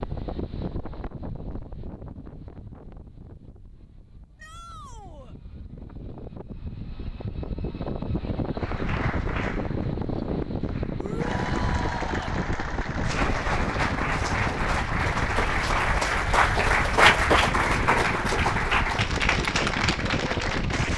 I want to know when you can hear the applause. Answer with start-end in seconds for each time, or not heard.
8.6-20.9.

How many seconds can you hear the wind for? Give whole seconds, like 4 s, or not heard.
21 s.